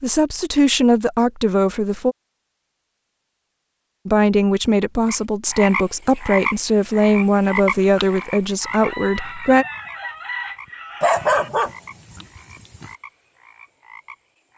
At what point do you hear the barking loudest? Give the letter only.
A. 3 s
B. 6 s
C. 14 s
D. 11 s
D.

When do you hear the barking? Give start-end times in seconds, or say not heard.
11.0-12.9.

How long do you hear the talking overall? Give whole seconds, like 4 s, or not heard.
8 s.